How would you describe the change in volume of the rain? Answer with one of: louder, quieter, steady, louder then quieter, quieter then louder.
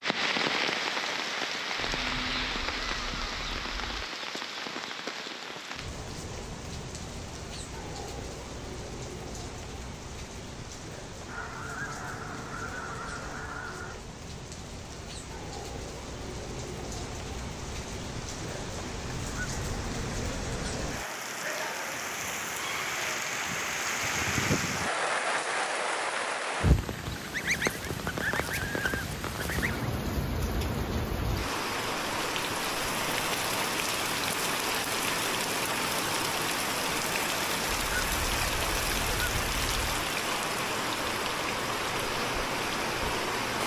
quieter then louder.